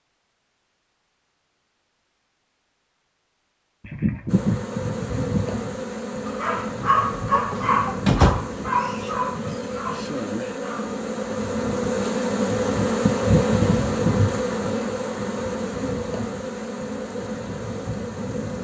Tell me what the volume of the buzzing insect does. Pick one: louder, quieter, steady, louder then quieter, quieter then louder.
louder then quieter.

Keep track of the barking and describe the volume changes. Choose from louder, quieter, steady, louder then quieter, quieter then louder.
quieter.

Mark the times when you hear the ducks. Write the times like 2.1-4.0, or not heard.
3.8-5.7.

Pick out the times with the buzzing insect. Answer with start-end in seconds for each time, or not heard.
4.2-18.5.